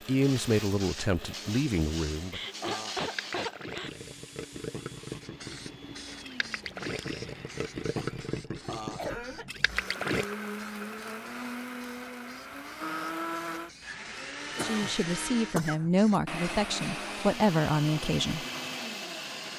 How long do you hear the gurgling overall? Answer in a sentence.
The gurgling can be heard for 7 seconds in total.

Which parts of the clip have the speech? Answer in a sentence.
You can hear the speech from 0.1 to 2.4 s and from 14.6 to 18.4 s.